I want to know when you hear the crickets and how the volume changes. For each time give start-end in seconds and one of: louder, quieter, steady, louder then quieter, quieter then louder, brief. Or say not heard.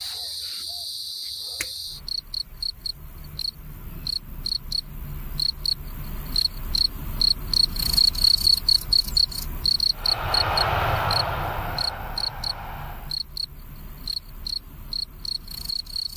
0.0-16.1 louder then quieter.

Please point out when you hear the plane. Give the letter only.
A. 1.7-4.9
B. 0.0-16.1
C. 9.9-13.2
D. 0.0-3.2
C.